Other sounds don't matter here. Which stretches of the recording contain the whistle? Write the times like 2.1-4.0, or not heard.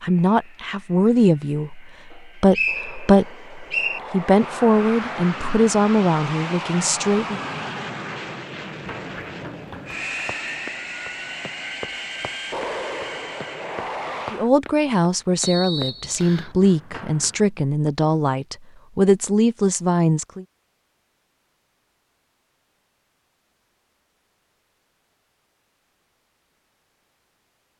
2.1-4.0, 15.4-16.6.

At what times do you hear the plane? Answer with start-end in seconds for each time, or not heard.
0.0-14.5.